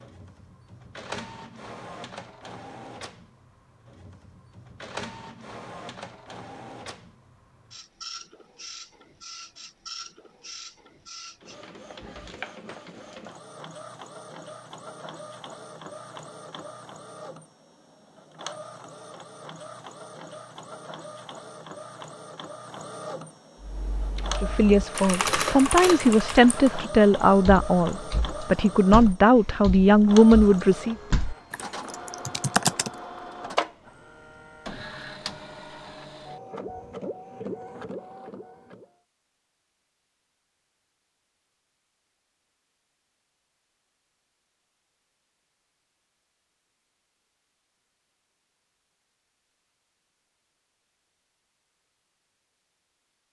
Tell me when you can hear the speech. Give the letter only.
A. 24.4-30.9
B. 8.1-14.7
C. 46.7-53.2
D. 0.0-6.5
A.